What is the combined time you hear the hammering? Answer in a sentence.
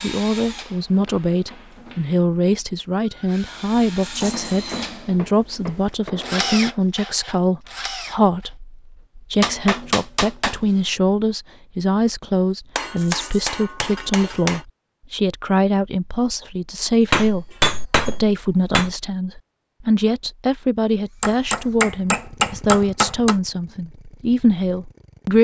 The hammering can be heard for 11 seconds in total.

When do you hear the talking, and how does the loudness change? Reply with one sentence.
The talking can be heard from 0.0 to 25.3 s, at a steady volume.